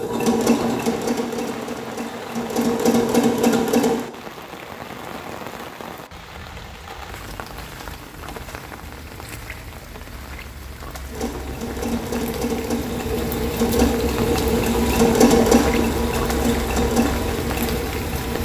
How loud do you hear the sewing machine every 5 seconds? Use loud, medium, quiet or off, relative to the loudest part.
loud, off, loud, loud.